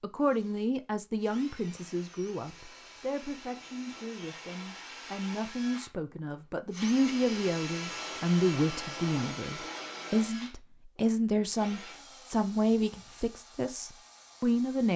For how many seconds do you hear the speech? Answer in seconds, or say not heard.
15 s.